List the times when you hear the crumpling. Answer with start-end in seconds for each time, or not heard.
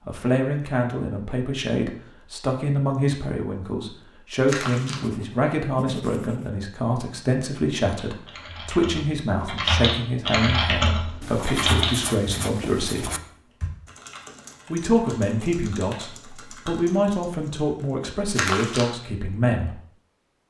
4.5-5.0, 18.4-18.9.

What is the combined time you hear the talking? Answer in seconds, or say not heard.
18 s.